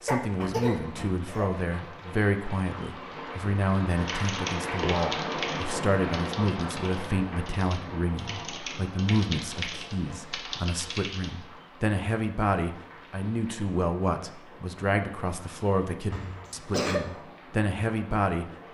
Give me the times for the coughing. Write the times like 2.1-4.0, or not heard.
0.1-1.5, 16.1-17.0.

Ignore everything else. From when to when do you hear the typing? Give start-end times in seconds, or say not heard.
4.0-11.4.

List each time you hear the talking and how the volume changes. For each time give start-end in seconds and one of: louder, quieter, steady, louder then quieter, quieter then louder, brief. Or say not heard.
0.0-18.4 steady.